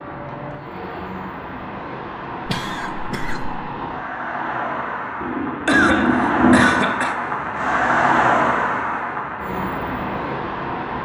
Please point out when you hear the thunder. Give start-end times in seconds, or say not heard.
5.2-6.8.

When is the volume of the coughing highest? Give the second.
6 s.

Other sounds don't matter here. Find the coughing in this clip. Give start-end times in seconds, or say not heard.
2.5-3.5, 5.7-7.2.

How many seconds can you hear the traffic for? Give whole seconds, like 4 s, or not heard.
11 s.